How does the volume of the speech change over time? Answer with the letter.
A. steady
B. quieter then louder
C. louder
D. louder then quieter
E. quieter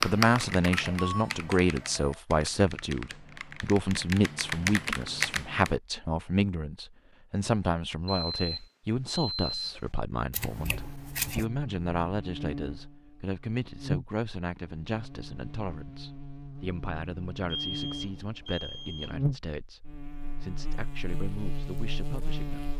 E.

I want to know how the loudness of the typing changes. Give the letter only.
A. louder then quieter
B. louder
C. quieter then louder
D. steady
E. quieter
C.